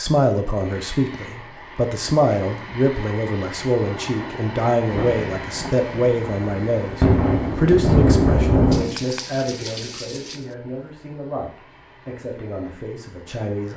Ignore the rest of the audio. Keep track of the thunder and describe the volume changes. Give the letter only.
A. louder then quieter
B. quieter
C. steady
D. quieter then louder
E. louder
E.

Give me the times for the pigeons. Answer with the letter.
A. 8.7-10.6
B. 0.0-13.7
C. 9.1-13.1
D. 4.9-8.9
A.